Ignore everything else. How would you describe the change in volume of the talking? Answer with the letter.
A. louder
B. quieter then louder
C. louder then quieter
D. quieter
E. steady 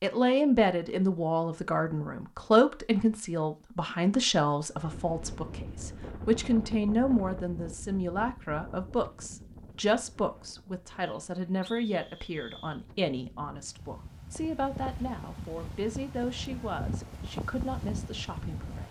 D.